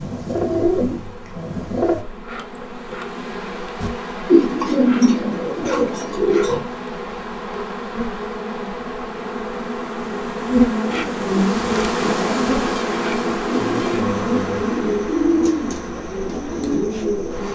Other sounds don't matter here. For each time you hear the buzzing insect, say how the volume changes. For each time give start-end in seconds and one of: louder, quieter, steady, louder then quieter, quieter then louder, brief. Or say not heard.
0.0-17.5 louder then quieter.